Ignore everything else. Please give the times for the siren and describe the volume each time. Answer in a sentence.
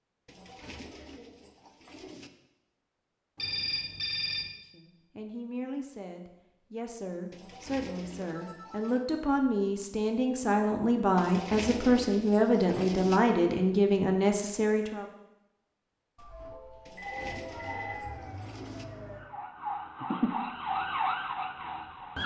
The siren can be heard from 17.1 to 22.2 s, getting louder.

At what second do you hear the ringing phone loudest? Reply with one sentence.
The loudest moment of the ringing phone is at 4 seconds.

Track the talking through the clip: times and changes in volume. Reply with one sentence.
The talking can be heard from 4.7 to 15.1 s, getting louder.